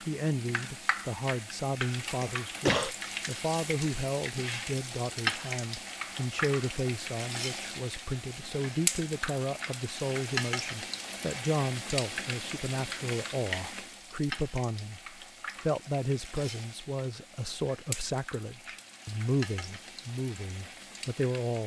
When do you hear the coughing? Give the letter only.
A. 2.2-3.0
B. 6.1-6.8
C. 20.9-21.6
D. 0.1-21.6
A.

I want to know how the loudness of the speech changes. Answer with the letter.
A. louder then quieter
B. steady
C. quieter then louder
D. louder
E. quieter
B.